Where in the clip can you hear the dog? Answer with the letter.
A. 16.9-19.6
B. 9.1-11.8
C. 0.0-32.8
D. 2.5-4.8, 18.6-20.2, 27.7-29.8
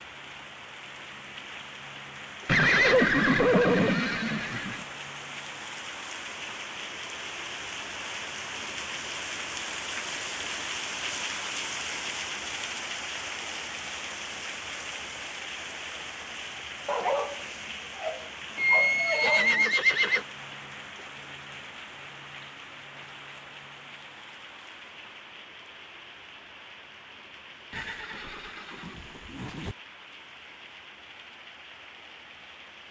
A.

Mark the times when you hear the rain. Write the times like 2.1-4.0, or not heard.
0.0-32.8.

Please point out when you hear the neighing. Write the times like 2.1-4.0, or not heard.
2.5-4.8, 18.6-20.2, 27.7-29.8.